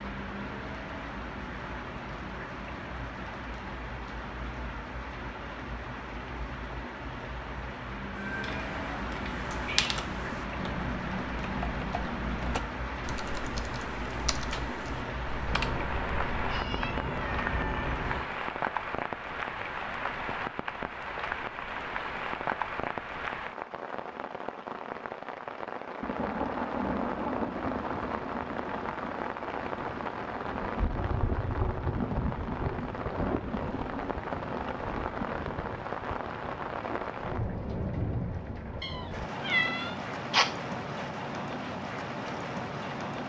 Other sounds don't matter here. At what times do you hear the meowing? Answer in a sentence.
The meowing can be heard from 8.2 to 9.9 s, from 15.4 to 18.2 s and from 38.8 to 40.5 s.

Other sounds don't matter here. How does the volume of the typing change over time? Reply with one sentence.
The volume of the typing goes down.